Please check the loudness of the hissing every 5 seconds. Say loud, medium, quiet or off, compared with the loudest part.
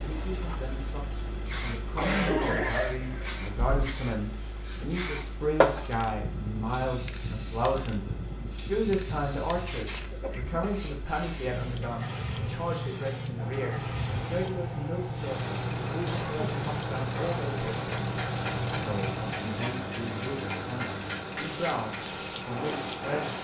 medium, loud, loud, loud, medium.